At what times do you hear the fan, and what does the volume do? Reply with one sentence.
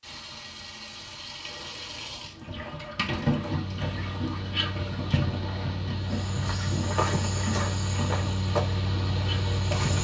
The fan can be heard from 3.4 to 10.0 s, getting louder.